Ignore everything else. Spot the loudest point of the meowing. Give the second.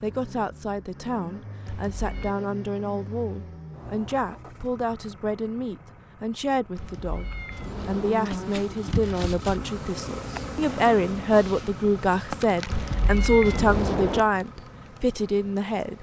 14 s.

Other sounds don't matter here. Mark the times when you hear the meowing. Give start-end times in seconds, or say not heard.
1.6-2.3, 6.8-8.2, 12.7-14.2.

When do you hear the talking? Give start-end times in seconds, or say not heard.
0.0-7.2, 7.8-15.9.